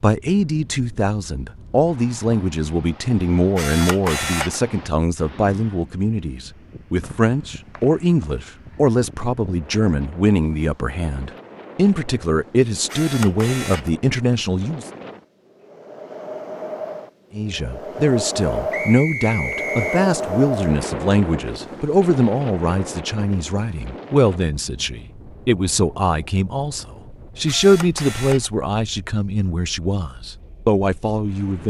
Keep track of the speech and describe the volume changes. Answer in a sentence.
The volume of the speech stays about the same.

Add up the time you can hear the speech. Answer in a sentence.
You can hear the speech for 29 seconds altogether.